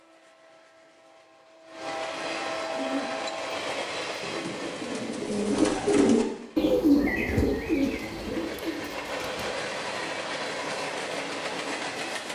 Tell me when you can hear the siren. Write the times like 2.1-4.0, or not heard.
not heard.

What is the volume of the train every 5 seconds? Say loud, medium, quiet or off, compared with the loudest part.
loud, medium, loud.